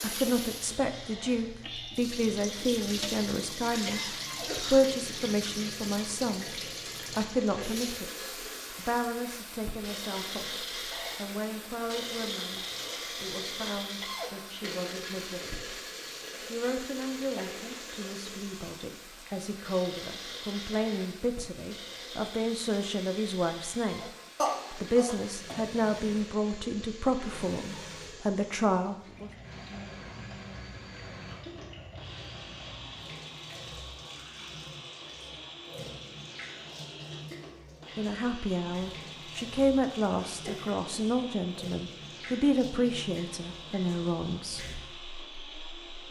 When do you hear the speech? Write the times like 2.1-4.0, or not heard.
0.0-15.7, 16.5-24.1, 24.8-29.3, 38.0-44.8.